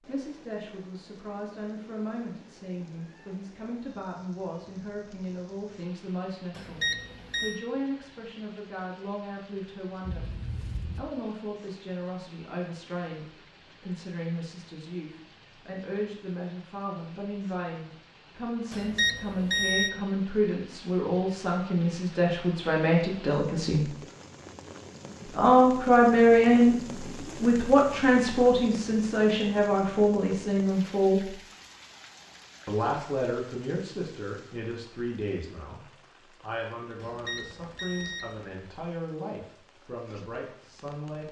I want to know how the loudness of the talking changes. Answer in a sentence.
The volume of the talking goes up, then down.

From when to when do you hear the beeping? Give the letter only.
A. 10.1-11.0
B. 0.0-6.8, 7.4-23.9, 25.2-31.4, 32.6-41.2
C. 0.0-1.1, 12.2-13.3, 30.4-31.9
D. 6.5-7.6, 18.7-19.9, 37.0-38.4
D.